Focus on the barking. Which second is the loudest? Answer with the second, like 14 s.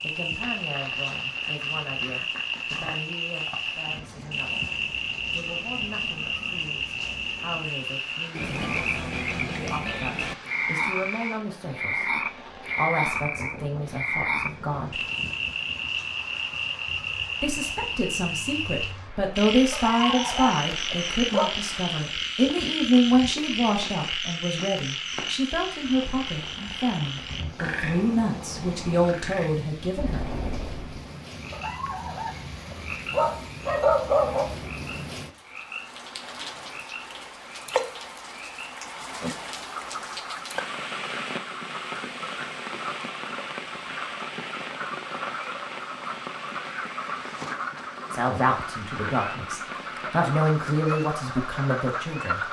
34 s.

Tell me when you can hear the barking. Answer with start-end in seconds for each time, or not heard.
19.7-21.5, 31.5-34.5.